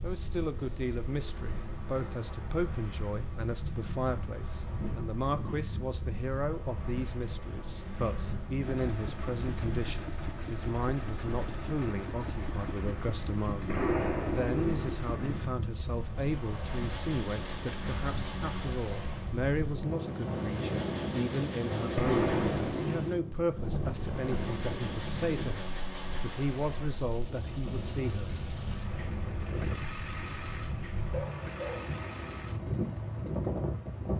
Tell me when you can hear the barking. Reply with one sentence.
The barking can be heard from 31.1 to 32.0 s.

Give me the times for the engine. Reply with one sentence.
You can hear the engine from 8.6 to 34.1 s.